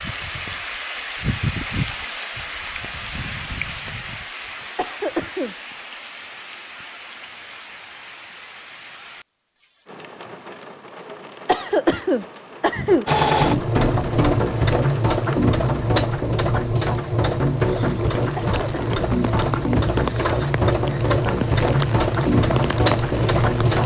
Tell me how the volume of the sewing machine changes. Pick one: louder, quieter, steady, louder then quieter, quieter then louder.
steady.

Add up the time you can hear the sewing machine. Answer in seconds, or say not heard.
11 s.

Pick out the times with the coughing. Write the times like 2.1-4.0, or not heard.
4.8-5.5, 11.4-13.1, 18.4-19.0.